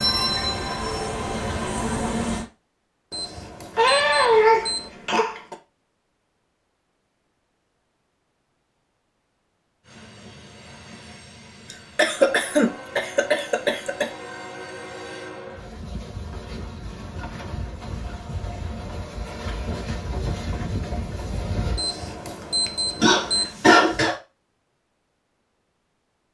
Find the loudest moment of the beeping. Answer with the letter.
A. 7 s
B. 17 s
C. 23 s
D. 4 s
C.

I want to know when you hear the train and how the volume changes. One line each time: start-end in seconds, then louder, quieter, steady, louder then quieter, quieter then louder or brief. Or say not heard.
0.0-2.5 brief
9.8-21.8 louder.